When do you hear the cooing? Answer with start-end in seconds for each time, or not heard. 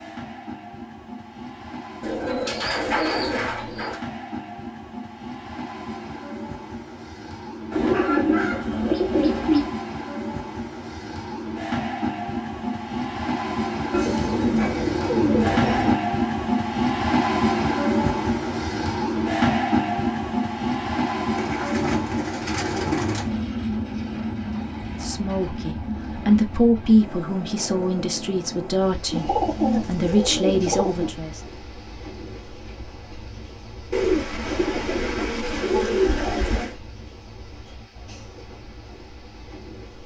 2.0-4.0, 7.7-9.8, 13.9-15.9, 21.4-23.4, 29.1-31.1, 33.9-36.8.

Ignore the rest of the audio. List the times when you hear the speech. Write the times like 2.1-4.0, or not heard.
24.9-31.4.